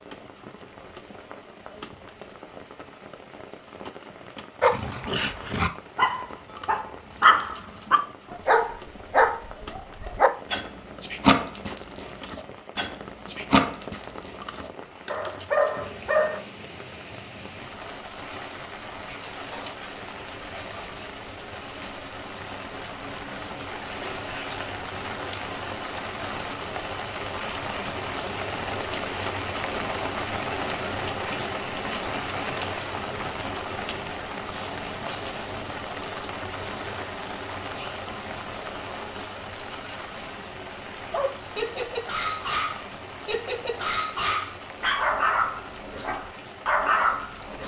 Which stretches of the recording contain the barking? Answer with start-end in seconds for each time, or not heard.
4.6-16.4, 41.1-47.6.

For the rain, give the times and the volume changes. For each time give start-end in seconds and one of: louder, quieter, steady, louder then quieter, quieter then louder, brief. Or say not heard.
0.0-47.6 louder then quieter.